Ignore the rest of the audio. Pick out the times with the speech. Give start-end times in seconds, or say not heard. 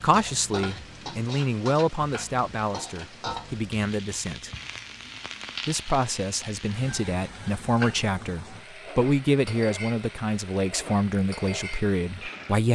0.0-4.5, 5.7-12.7.